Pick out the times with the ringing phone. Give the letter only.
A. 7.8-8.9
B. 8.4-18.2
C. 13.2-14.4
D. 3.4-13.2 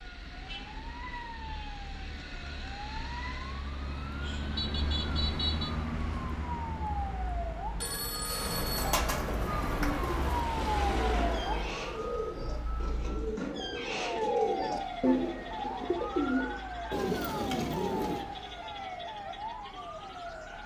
A.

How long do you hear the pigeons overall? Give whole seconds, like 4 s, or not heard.
10 s.